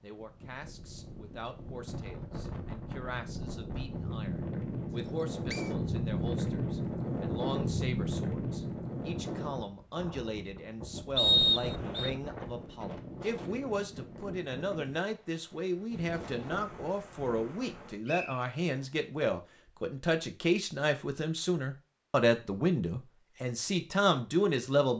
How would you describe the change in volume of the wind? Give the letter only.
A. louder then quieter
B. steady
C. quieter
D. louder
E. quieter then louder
A.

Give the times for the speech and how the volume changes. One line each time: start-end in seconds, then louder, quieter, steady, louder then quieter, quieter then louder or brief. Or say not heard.
0.0-24.9 louder.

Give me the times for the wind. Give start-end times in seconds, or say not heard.
0.0-18.0.